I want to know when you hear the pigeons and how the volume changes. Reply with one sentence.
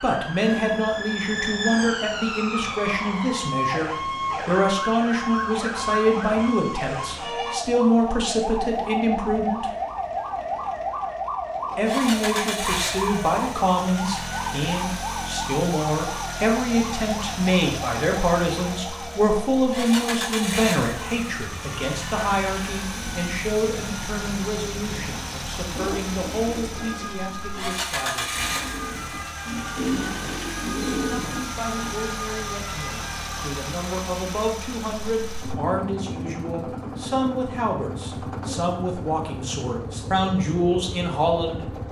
You can hear the pigeons from 25.8 to 31.9 s, getting quieter then louder.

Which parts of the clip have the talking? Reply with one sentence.
The talking can be heard from 0.0 to 9.7 s, from 11.8 to 28.6 s and from 30.6 to 41.8 s.